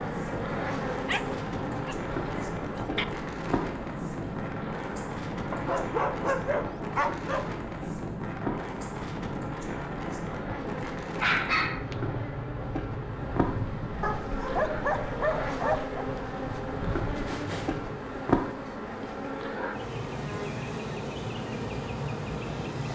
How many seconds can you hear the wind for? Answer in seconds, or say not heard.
18 s.